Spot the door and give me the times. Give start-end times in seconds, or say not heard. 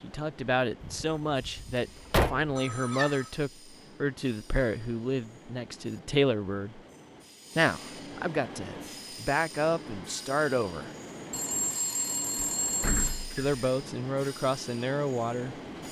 0.8-2.5, 12.3-13.7.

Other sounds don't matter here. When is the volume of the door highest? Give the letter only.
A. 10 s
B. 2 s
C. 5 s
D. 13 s
B.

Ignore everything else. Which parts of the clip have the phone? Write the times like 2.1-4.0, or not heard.
2.5-3.3, 11.3-13.2.